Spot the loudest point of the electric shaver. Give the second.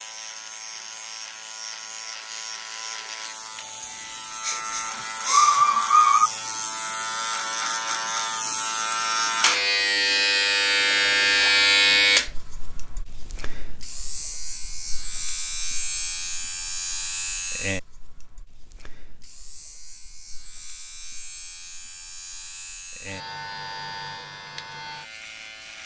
12 s.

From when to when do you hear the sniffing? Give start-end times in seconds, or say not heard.
3.8-6.3.